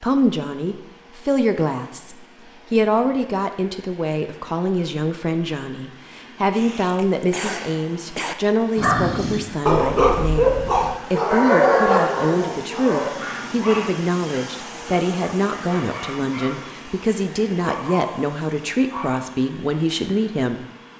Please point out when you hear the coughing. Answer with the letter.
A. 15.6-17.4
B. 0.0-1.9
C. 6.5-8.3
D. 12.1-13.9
C.